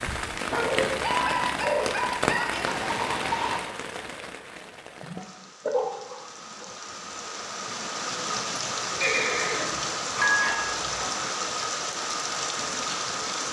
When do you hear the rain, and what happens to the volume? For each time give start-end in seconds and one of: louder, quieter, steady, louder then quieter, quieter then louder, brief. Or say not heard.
0.0-13.4 quieter then louder.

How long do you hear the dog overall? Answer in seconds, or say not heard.
5 s.